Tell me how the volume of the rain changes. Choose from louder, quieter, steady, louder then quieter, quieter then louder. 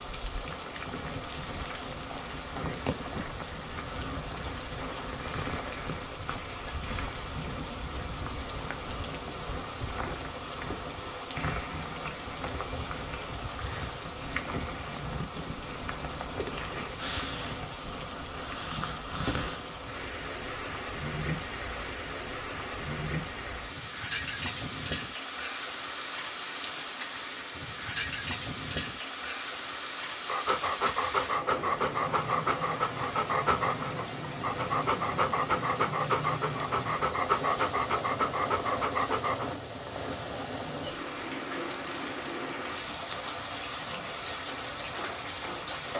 steady.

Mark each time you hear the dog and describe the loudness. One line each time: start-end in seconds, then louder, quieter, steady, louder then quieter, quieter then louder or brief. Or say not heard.
30.2-39.5 steady.